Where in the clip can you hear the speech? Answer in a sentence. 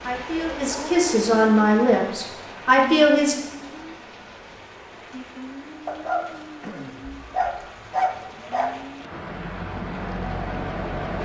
You can hear the speech from 0.0 to 3.4 s.